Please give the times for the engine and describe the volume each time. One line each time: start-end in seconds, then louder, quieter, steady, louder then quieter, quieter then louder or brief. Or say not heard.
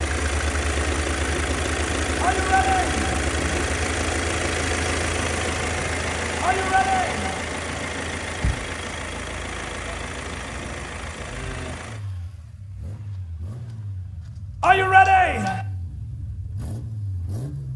0.0-17.7 quieter.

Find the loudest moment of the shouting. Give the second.
15 s.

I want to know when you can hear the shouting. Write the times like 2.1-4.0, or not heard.
2.2-3.1, 6.4-7.4, 14.6-15.6.